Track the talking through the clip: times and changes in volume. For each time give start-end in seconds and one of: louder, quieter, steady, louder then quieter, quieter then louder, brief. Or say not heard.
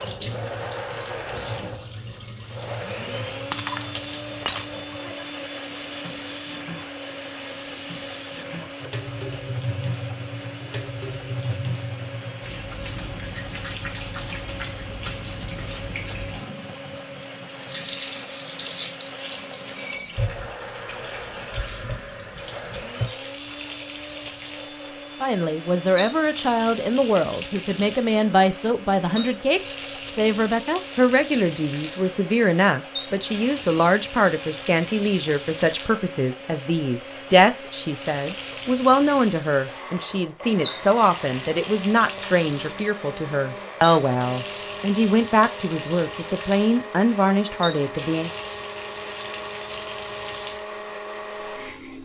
25.2-48.3 steady.